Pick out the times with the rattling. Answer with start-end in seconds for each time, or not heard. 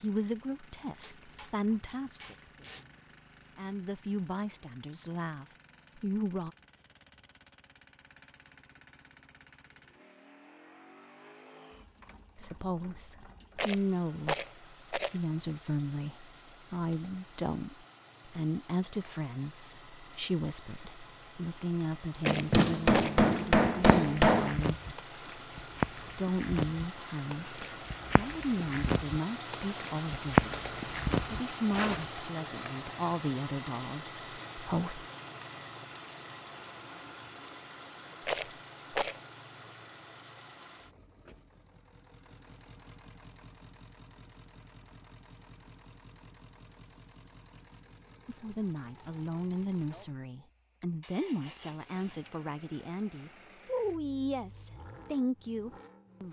13.6-15.2, 22.2-23.2, 38.2-39.2.